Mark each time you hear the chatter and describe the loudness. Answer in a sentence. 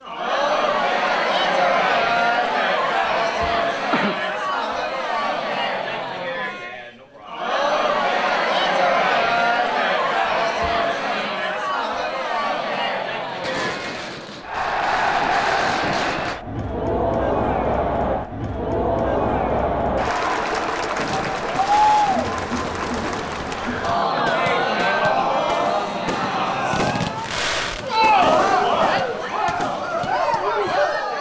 You can hear the chatter from 0.0 to 31.1 s, at a steady volume.